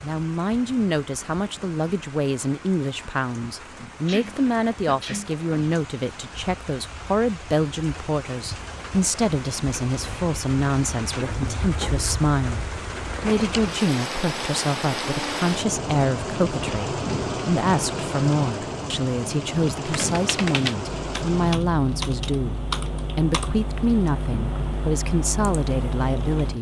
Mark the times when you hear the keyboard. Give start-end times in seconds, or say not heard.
19.9-26.5.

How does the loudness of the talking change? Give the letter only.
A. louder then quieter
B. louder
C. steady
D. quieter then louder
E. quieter
C.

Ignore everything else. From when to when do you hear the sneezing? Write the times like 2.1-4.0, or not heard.
4.0-5.3.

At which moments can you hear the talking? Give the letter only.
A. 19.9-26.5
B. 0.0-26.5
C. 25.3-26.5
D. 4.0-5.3
B.